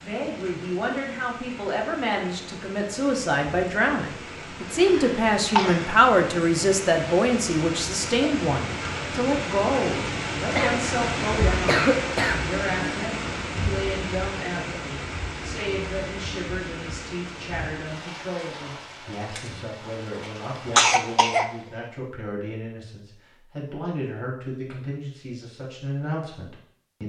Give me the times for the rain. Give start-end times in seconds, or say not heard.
0.0-21.7.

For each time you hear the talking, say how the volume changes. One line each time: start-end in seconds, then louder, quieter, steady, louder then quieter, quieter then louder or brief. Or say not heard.
0.0-27.0 quieter.